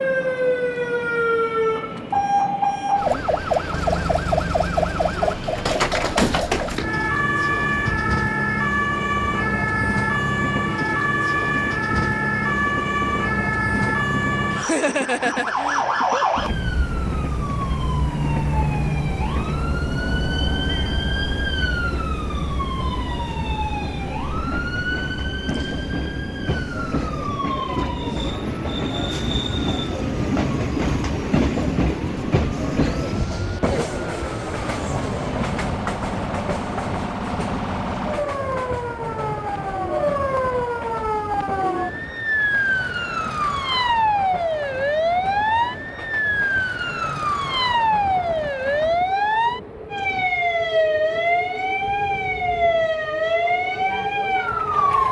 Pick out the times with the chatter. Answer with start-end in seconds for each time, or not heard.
not heard.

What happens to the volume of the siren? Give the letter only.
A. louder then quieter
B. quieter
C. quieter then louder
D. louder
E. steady
C.